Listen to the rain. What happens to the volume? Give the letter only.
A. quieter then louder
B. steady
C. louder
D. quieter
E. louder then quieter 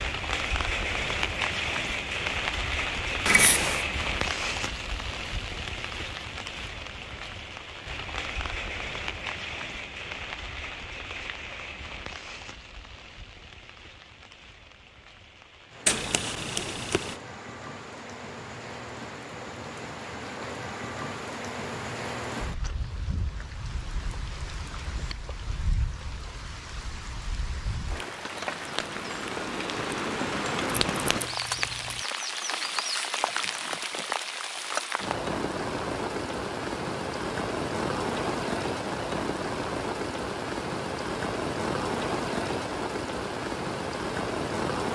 A.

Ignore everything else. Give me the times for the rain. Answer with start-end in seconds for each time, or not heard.
0.0-44.9.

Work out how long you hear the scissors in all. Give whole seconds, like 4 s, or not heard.
3 s.